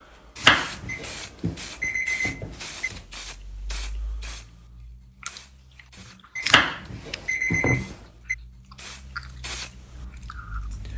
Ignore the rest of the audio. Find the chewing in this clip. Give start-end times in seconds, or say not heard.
5.2-8.0, 8.7-10.9.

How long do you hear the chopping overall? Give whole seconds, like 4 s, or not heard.
4 s.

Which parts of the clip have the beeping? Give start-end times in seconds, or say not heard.
0.8-2.9, 6.3-8.3.